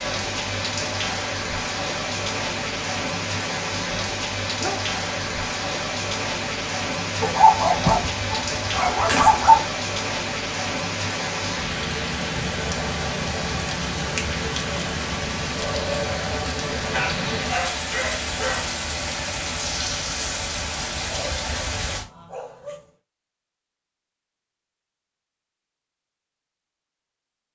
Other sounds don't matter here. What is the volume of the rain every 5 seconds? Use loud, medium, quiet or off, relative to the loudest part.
loud, loud, loud, loud, loud, off.